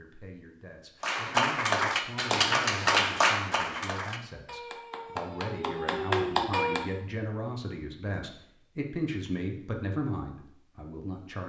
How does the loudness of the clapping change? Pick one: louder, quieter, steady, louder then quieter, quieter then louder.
quieter then louder.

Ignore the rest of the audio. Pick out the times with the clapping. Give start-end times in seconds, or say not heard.
1.0-6.9.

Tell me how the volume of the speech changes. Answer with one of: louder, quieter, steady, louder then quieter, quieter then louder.
louder.